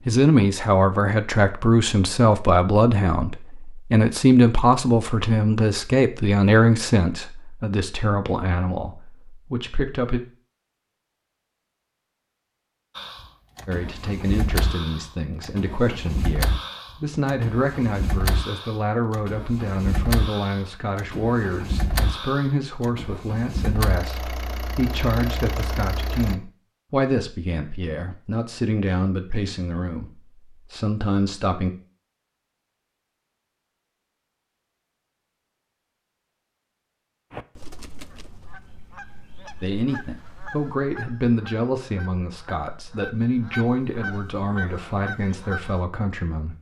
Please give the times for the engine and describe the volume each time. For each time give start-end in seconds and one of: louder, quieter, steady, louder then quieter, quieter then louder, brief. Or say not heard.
12.9-26.4 steady.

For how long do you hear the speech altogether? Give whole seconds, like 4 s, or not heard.
35 s.